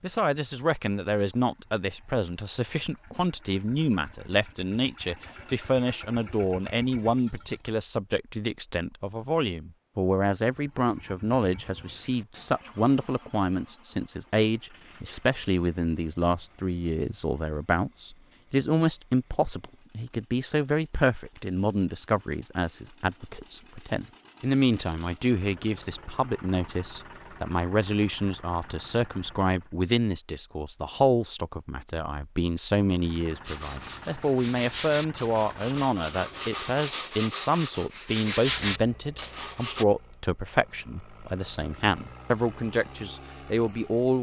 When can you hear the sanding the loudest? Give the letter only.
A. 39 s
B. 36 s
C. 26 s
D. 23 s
A.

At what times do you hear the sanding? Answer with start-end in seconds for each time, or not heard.
33.4-39.9.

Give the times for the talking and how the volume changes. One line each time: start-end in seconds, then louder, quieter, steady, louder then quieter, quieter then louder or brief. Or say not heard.
0.0-44.1 steady.